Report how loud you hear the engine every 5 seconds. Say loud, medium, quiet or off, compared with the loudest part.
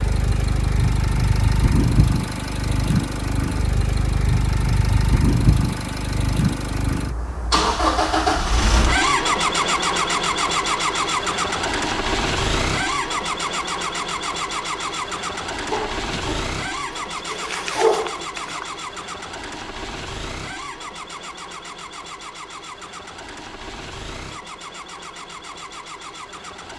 loud, loud, loud, medium, quiet, quiet.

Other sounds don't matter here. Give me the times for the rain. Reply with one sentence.
The rain can't be heard in this clip.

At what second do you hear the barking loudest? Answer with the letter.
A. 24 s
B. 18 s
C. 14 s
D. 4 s
B.